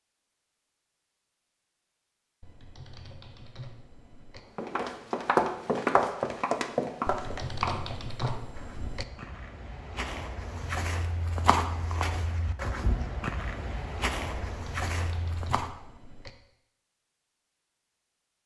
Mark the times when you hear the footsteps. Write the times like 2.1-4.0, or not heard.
4.5-15.7.